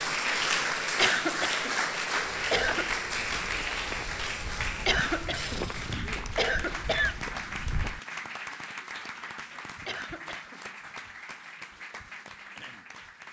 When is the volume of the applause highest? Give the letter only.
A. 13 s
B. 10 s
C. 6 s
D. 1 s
D.